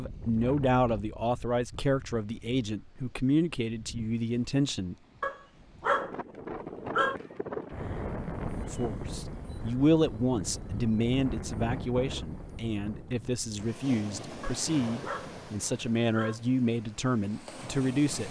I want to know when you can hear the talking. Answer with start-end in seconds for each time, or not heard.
0.0-5.0, 8.7-18.2.